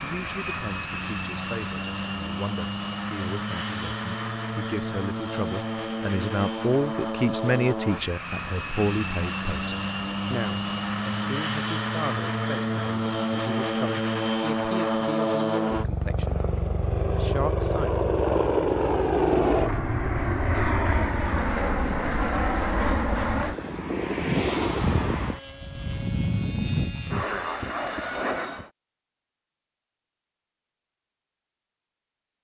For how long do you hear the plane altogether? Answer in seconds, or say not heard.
29 s.